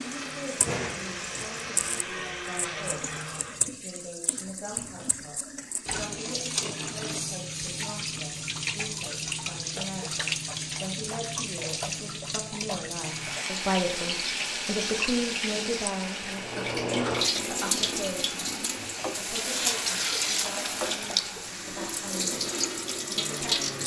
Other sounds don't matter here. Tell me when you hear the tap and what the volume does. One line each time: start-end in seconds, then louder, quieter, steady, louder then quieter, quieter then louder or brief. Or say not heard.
0.0-23.8 louder.